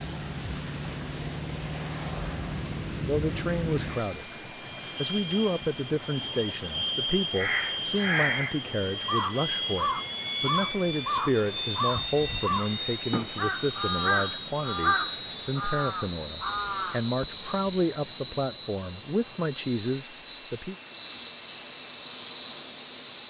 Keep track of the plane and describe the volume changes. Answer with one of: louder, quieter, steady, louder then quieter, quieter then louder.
steady.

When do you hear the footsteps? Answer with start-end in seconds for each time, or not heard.
not heard.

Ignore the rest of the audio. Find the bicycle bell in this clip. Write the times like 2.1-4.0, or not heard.
11.9-12.6.